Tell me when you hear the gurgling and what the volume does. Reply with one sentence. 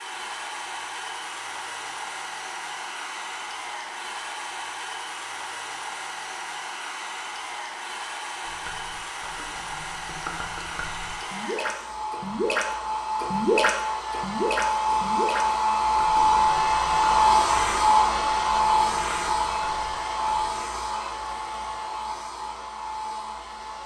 The gurgling can be heard from 8.4 to 20.4 s, getting louder then quieter.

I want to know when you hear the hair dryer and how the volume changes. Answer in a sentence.
You can hear the hair dryer from 0.0 to 23.8 s, getting louder then quieter.